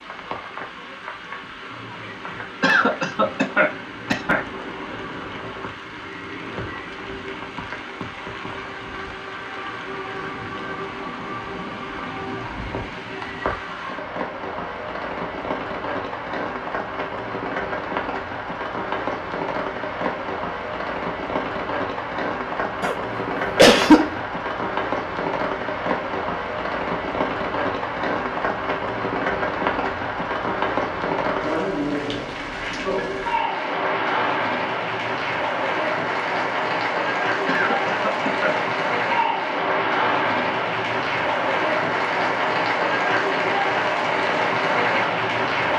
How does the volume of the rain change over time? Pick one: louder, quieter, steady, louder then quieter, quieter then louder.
louder.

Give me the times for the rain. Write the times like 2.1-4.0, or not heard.
0.0-45.7.